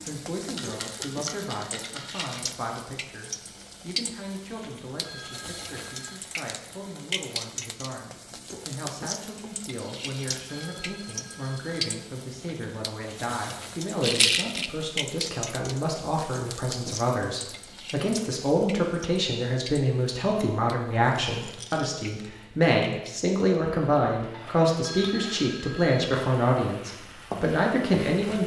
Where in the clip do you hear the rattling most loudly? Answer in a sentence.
The volume of the rattling peaks at 14 seconds.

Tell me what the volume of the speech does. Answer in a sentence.
The loudness of the speech goes up.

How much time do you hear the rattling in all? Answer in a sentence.
You can hear the rattling for 3 seconds altogether.